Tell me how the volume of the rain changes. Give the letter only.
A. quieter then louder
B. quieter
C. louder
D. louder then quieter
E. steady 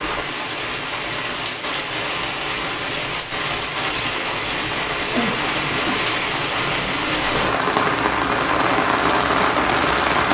C.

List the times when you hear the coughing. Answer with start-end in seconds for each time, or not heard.
5.1-6.0.